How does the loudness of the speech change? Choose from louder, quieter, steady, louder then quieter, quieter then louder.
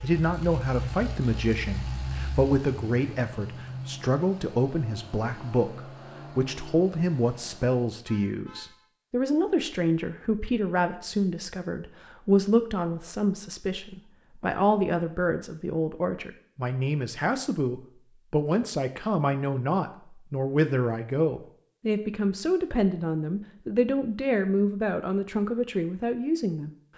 steady.